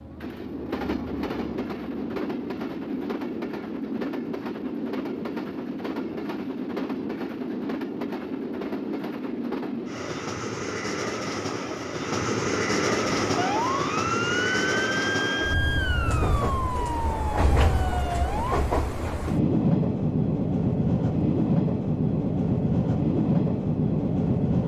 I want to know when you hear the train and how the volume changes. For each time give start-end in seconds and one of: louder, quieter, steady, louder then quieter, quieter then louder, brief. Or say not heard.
0.0-24.6 louder.